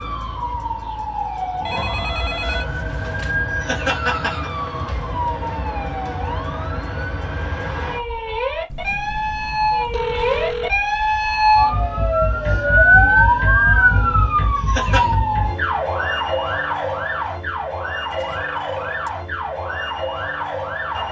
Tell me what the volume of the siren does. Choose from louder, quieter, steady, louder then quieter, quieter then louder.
louder then quieter.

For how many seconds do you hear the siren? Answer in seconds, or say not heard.
21 s.